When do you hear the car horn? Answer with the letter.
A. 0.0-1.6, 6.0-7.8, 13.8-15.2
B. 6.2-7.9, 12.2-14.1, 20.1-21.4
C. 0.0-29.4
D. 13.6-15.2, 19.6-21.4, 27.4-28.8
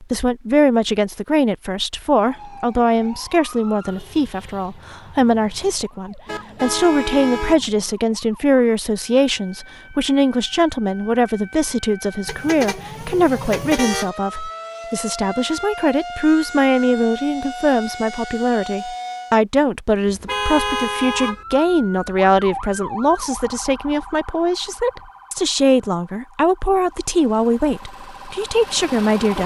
B.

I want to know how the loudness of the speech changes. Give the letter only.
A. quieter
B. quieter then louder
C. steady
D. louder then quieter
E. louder
C.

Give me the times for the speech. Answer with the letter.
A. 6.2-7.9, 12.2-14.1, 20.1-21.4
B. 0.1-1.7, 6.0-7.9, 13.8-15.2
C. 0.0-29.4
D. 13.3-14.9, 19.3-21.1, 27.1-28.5
C.